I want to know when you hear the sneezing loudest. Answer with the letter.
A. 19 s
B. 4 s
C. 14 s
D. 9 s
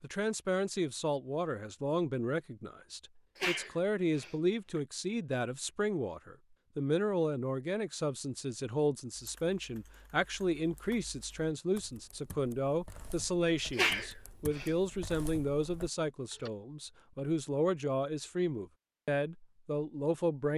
C.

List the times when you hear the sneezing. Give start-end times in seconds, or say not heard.
3.4-4.8, 13.8-14.7.